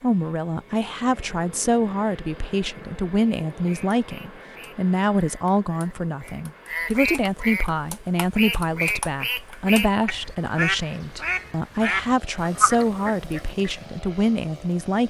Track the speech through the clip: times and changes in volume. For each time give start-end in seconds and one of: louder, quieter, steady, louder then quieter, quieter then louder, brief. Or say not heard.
0.0-15.0 steady.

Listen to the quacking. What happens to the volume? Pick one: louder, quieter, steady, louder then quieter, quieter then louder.
louder.